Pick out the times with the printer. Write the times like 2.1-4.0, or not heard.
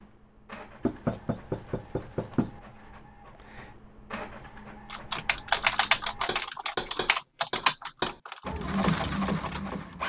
0.0-6.3, 8.4-10.0.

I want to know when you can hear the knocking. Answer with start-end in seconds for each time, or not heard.
0.8-2.6, 6.2-8.2.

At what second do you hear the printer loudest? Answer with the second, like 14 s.
9 s.